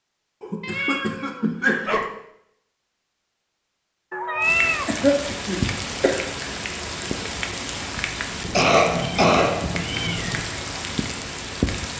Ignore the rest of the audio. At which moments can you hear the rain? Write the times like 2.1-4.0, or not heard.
4.4-11.9.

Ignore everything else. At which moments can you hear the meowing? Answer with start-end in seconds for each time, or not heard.
0.6-2.1, 4.1-5.0, 8.4-10.4.